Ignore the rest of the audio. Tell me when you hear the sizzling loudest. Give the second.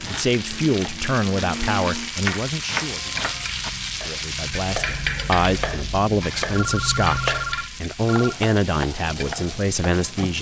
5 s.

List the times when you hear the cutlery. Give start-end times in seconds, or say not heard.
not heard.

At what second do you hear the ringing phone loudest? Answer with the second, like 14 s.
7 s.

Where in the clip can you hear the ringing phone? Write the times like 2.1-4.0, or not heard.
2.8-3.5, 6.5-8.3.